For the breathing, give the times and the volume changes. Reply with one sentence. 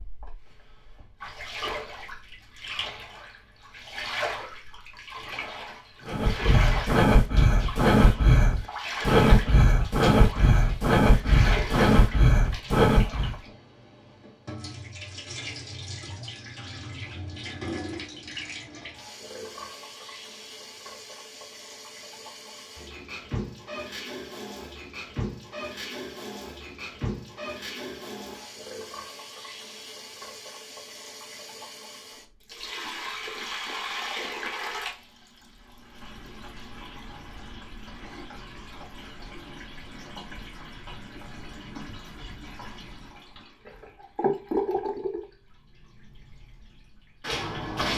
You can hear the breathing from 6.0 to 13.3 s, at a steady volume.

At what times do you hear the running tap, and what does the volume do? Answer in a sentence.
You can hear the running tap from 0.0 to 47.9 s, at a steady volume.